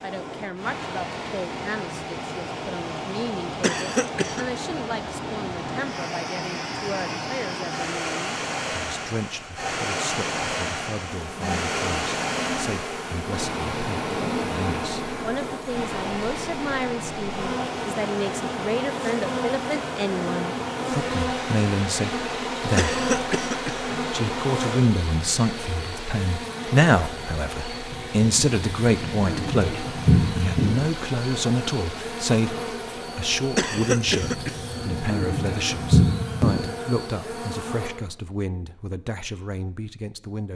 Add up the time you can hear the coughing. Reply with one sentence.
The coughing can be heard for 3 seconds in total.